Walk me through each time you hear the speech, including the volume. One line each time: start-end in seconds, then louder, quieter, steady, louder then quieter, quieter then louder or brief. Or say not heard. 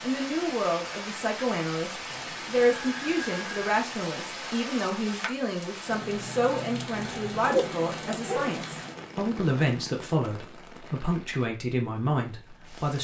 0.0-12.9 steady.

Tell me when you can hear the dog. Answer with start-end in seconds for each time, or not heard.
7.0-8.6.